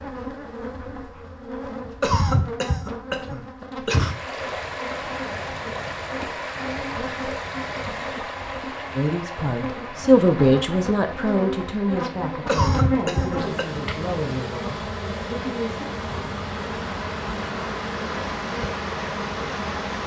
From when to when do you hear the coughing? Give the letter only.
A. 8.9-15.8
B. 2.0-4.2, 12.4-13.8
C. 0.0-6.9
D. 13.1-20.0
B.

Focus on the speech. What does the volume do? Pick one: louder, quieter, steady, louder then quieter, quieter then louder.
quieter.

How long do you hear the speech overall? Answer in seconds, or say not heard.
7 s.